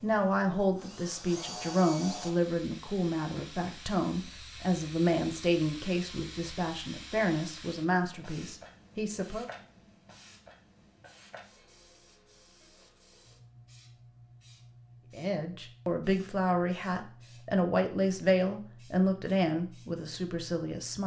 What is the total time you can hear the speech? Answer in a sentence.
The speech can be heard for 15 seconds in total.